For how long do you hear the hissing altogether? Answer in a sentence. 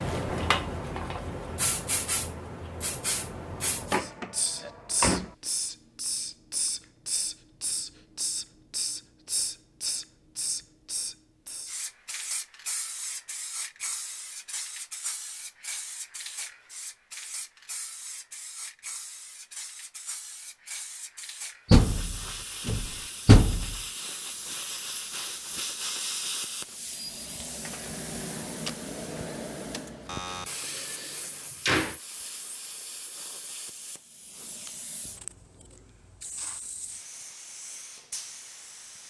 The hissing can be heard for 39 seconds in total.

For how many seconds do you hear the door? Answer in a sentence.
You can hear the door for 5 seconds altogether.